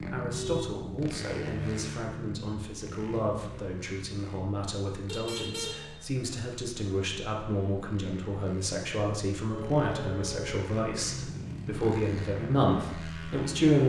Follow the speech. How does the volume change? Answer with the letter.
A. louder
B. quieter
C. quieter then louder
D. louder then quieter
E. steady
A.